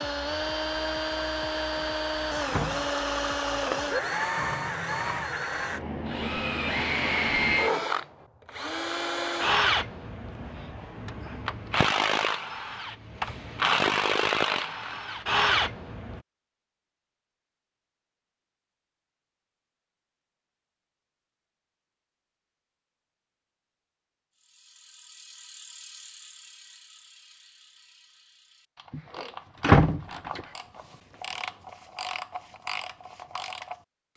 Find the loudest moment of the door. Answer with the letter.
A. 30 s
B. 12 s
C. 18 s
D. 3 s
A.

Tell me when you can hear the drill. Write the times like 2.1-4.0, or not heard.
0.0-16.2.